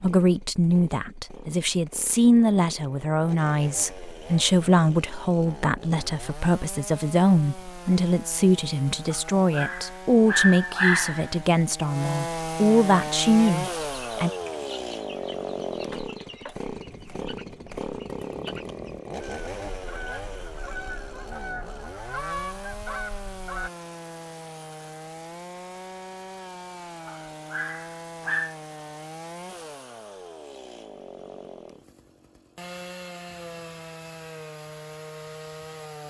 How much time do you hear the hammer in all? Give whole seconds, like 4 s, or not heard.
not heard.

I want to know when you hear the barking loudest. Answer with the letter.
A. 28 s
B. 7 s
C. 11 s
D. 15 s
C.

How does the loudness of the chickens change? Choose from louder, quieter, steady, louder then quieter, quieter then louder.
louder.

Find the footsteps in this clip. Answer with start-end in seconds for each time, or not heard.
not heard.